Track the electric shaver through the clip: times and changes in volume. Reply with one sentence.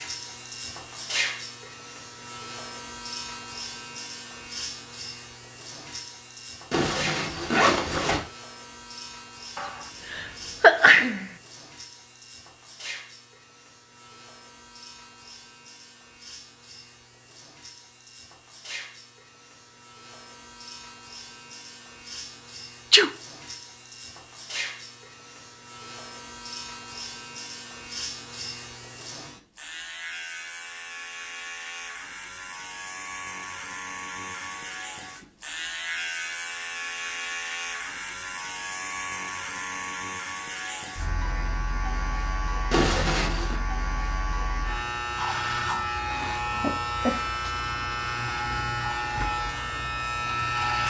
You can hear the electric shaver from 0.0 to 50.8 s, getting quieter then louder.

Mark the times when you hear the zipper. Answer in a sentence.
The zipper can be heard from 6.7 to 8.2 s and from 42.7 to 43.6 s.